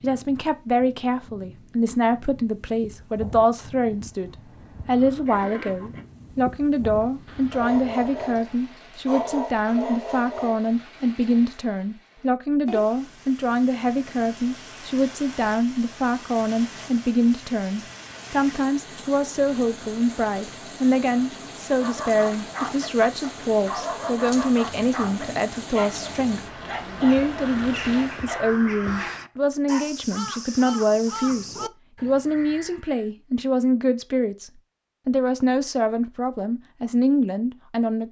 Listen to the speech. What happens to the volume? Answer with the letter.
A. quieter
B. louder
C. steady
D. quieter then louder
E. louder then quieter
C.